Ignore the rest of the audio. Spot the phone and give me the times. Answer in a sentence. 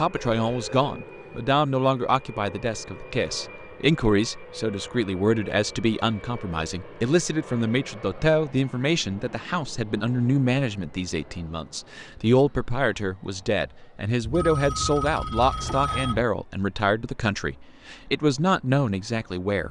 You can hear the phone from 0.1 to 0.8 s and from 14.2 to 16.2 s.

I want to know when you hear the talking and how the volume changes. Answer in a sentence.
You can hear the talking from 0.0 to 19.6 s, at a steady volume.